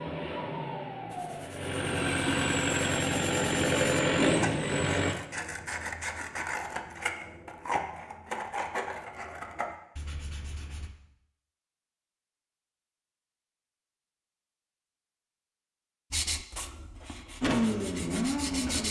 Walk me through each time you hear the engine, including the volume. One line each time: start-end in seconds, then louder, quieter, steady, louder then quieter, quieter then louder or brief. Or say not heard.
0.0-5.2 louder
17.4-18.8 brief.